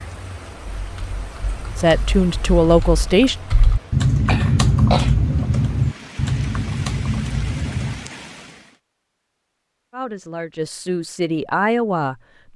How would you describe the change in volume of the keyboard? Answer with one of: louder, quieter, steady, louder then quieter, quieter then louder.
louder then quieter.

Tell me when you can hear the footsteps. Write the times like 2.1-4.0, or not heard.
not heard.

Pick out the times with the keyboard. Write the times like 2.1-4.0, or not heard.
0.8-8.1.